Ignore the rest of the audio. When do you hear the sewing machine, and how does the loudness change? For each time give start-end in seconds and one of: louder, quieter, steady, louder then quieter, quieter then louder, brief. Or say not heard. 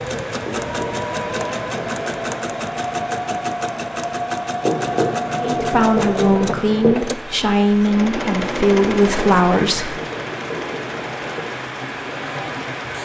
0.0-12.9 quieter.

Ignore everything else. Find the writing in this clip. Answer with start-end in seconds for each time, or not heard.
0.4-2.5, 4.6-7.0, 9.2-11.5.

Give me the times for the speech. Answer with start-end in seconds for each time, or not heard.
5.4-10.0.